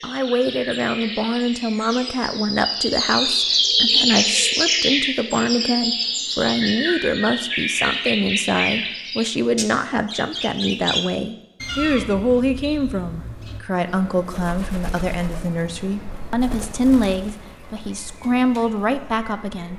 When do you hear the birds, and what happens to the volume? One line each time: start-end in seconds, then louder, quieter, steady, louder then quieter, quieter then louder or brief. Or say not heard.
0.0-19.7 quieter.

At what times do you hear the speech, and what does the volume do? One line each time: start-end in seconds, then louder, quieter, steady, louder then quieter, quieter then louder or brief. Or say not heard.
0.0-19.7 steady.